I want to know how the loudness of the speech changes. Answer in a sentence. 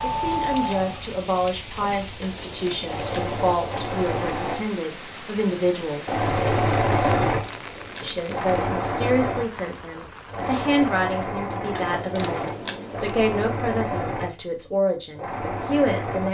The loudness of the speech stays about the same.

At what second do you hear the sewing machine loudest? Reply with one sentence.
The volume of the sewing machine peaks at 7 seconds.